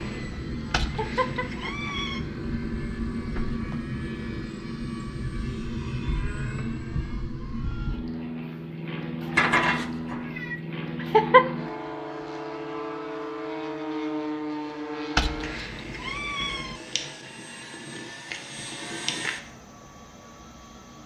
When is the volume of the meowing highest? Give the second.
10 s.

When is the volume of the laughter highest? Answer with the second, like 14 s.
11 s.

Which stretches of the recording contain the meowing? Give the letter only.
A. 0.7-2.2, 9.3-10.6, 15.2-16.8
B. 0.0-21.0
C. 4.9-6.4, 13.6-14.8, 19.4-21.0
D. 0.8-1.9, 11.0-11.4
A.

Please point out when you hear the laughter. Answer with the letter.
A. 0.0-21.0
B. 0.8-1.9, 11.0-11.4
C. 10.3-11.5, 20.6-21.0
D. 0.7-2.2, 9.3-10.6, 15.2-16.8
B.